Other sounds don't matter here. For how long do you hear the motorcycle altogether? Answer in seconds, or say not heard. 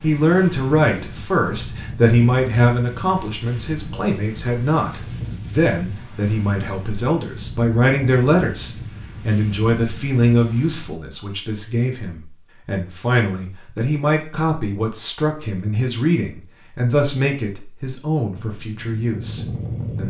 2 s.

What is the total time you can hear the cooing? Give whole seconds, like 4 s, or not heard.
not heard.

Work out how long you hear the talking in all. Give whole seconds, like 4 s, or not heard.
20 s.